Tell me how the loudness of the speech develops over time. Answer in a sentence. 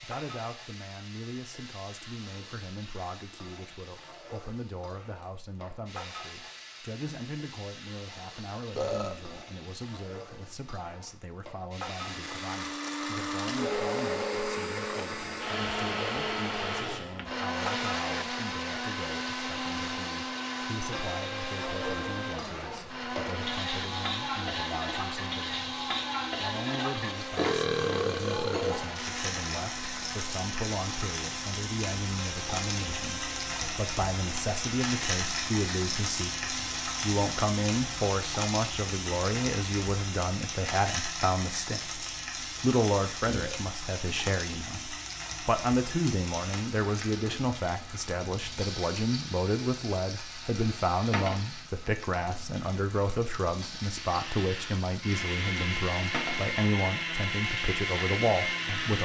The loudness of the speech goes up.